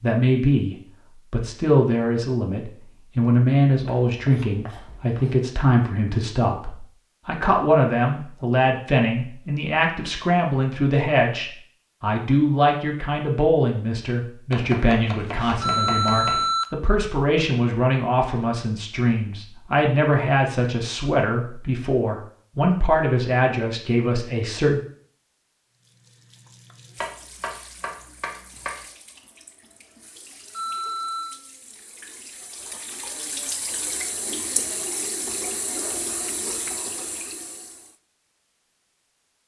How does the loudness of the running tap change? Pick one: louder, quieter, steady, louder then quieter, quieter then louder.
louder.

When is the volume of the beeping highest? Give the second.
16 s.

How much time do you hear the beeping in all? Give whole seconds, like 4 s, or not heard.
2 s.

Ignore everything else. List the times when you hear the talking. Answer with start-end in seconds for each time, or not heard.
0.0-24.8.